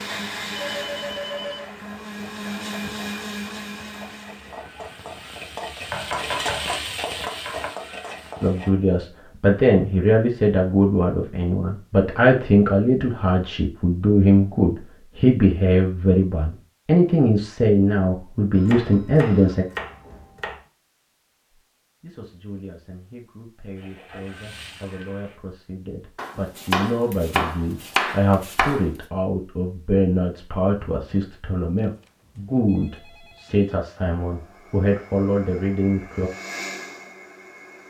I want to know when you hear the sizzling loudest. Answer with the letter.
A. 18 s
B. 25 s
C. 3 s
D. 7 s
D.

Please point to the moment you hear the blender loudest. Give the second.
3 s.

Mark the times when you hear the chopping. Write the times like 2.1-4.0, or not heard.
5.9-7.8, 18.6-20.6, 26.1-28.9.